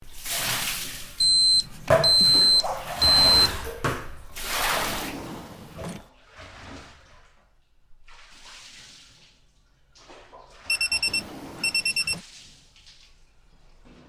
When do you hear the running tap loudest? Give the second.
2 s.